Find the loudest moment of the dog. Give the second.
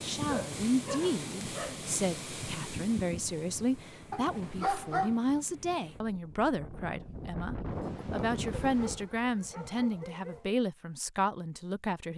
5 s.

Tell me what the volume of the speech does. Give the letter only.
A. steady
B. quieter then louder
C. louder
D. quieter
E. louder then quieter
A.